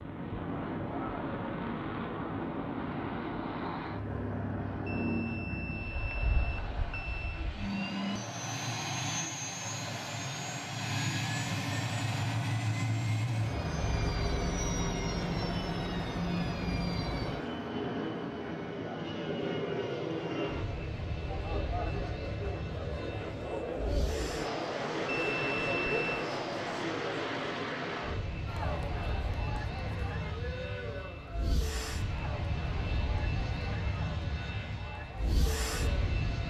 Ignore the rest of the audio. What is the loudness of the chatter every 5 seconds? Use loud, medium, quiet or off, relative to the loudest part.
medium, medium, medium, medium, loud, loud, medium, medium.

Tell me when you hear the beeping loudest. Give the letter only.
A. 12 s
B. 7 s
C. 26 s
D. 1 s
C.